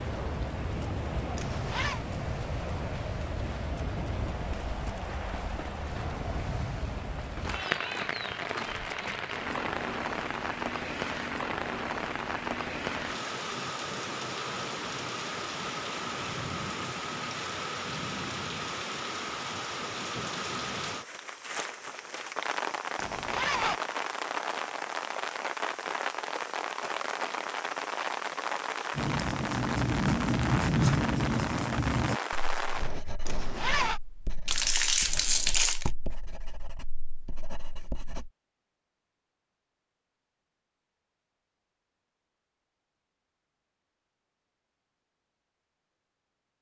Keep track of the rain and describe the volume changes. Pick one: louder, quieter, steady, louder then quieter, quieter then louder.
steady.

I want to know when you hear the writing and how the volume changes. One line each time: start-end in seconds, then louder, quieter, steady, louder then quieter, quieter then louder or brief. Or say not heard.
28.9-38.3 quieter.